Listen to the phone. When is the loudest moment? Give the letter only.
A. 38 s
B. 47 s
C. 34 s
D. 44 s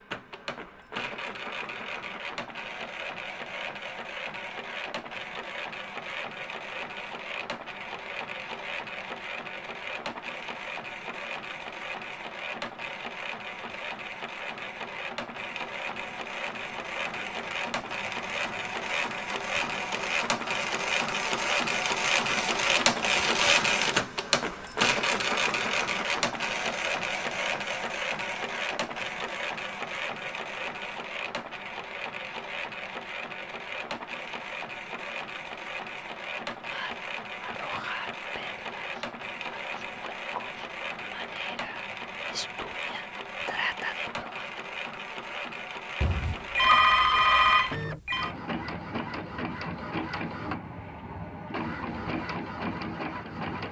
B.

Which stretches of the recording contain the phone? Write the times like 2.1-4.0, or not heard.
46.0-48.3.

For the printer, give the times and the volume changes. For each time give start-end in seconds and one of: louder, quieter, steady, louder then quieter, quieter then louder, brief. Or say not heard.
0.0-53.6 louder then quieter.